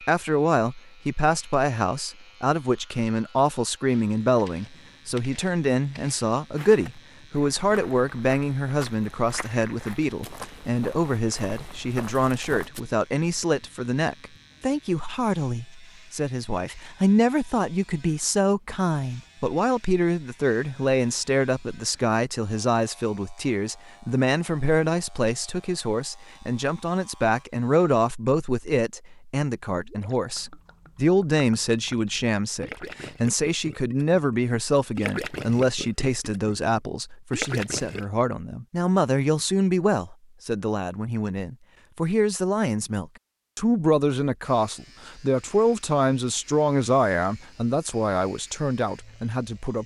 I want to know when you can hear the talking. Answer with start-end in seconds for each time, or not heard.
0.0-49.8.